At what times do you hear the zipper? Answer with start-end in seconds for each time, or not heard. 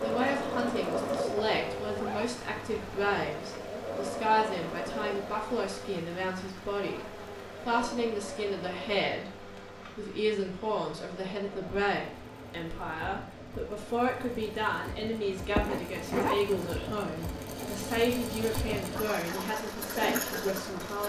1.4-3.4, 15.3-16.6.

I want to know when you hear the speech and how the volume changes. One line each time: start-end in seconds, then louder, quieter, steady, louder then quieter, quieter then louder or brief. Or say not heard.
0.0-21.0 steady.